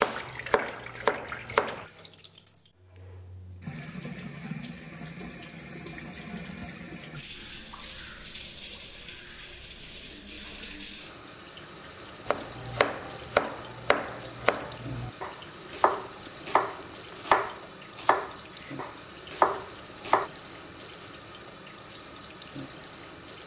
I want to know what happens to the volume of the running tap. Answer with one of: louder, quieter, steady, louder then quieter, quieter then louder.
steady.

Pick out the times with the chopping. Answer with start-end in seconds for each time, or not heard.
0.0-1.9, 12.2-20.3.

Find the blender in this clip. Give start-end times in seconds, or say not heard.
not heard.